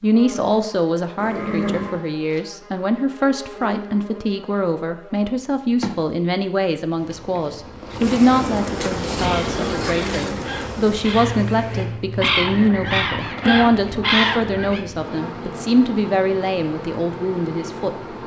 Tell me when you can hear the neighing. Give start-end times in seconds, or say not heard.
1.1-2.0.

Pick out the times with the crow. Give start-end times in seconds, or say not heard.
9.2-14.8.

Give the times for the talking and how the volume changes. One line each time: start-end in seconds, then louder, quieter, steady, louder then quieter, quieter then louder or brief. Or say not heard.
0.0-17.9 steady.